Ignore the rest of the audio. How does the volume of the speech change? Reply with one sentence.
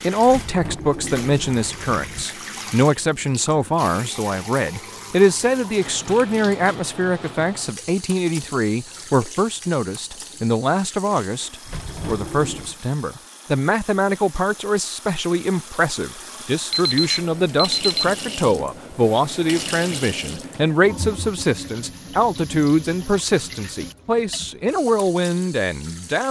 The volume of the speech stays about the same.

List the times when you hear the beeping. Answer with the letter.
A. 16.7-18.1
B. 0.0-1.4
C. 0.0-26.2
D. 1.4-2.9
A.